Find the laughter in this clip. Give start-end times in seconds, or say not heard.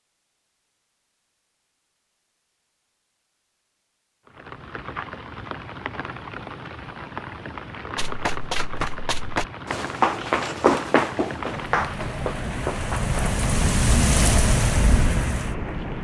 not heard.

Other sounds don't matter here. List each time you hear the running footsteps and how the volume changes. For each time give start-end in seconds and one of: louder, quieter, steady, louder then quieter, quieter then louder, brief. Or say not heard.
8.0-13.2 louder then quieter.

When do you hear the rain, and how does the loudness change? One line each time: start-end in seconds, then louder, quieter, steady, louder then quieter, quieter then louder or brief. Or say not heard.
4.2-15.9 louder.